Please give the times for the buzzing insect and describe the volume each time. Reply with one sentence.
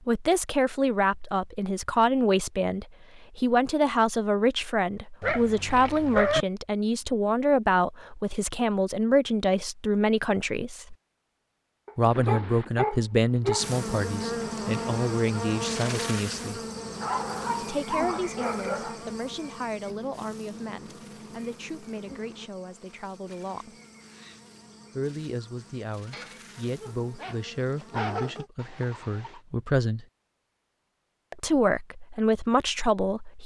You can hear the buzzing insect from 13.6 to 28.5 s, getting quieter.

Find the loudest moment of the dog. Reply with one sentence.
The loudest moment of the dog is at 6 seconds.